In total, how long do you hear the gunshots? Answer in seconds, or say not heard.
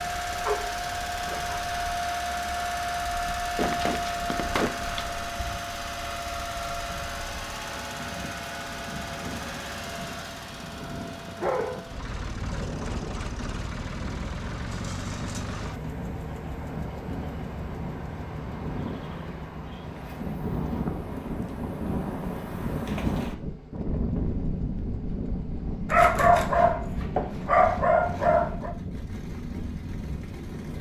2 s.